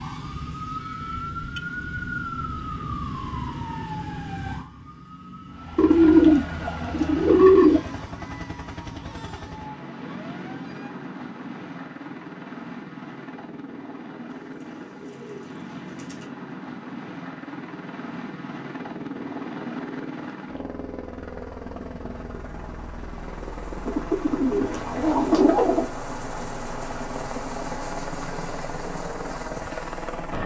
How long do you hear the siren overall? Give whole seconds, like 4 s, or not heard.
11 s.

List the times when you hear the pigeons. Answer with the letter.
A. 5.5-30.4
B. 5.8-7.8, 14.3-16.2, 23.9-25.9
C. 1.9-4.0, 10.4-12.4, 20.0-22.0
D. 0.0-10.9
B.